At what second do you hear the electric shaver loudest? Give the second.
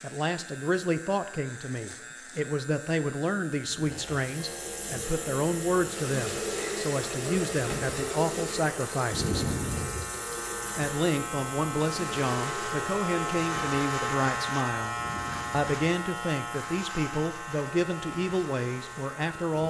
14 s.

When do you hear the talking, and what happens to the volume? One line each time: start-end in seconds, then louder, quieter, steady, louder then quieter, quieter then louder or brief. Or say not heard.
0.0-9.4 steady
10.8-19.6 steady.